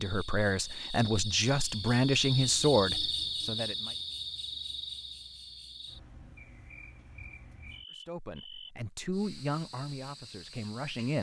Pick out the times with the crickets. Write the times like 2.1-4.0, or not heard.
0.0-11.1.